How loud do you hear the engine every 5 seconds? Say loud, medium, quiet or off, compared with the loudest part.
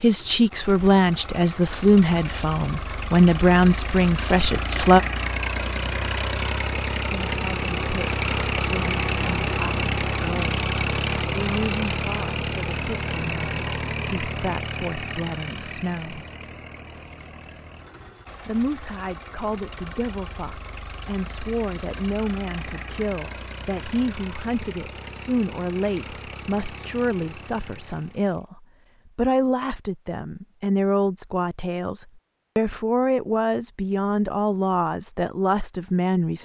medium, loud, loud, quiet, quiet, quiet, off, off.